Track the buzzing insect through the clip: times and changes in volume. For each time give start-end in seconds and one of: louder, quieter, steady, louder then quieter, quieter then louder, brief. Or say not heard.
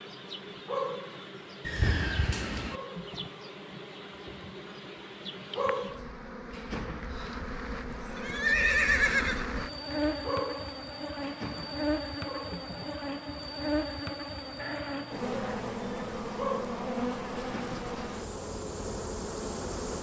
0.0-19.9 louder.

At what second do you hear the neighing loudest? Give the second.
9 s.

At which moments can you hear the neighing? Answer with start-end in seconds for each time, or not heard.
1.6-2.8, 7.8-10.1, 14.6-15.9.